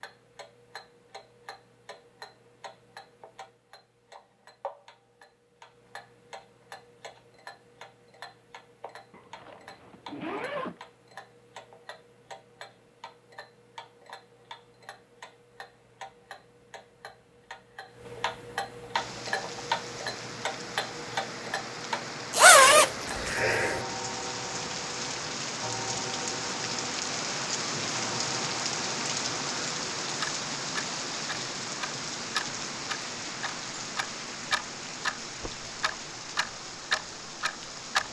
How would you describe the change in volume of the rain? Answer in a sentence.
The loudness of the rain goes up, then down.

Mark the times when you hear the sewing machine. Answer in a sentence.
You can't hear the sewing machine here.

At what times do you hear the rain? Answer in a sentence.
You can hear the rain from 18.9 to 38.0 s.